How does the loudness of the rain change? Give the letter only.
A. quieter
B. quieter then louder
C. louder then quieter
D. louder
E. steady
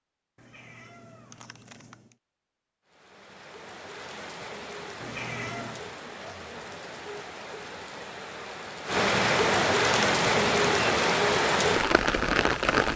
D.